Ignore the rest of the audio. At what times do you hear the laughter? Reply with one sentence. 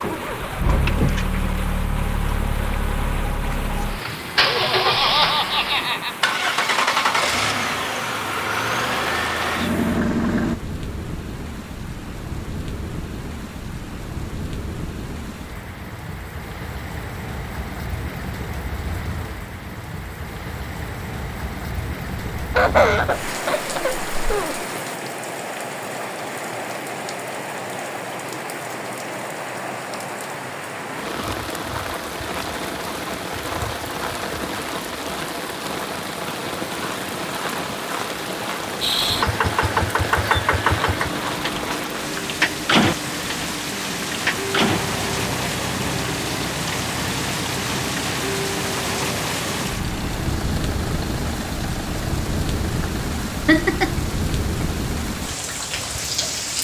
The laughter can be heard from 4.3 to 6.2 s, from 22.4 to 24.6 s and from 53.5 to 54.0 s.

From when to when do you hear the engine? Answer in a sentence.
The engine can be heard from 0.0 to 10.6 s and from 38.8 to 56.5 s.